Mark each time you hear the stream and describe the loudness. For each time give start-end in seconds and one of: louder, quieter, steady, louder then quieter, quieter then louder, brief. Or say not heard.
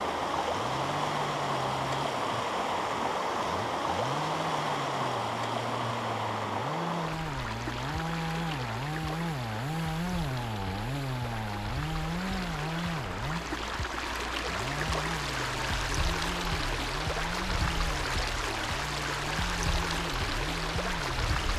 0.0-21.5 quieter then louder.